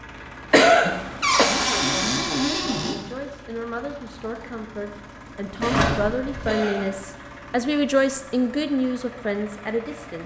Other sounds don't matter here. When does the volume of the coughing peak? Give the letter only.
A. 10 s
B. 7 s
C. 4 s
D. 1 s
D.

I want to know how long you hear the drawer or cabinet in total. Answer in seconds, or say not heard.
3 s.